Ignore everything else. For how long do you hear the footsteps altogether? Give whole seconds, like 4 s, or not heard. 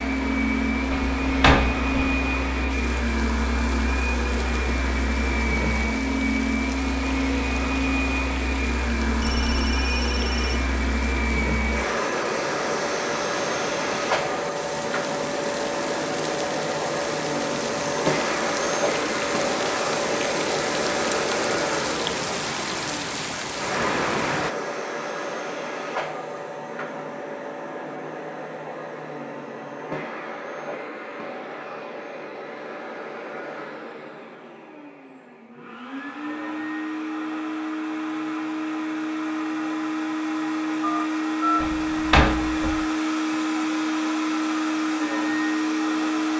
not heard.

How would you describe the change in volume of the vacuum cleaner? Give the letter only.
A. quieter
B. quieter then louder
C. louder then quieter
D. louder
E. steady
B.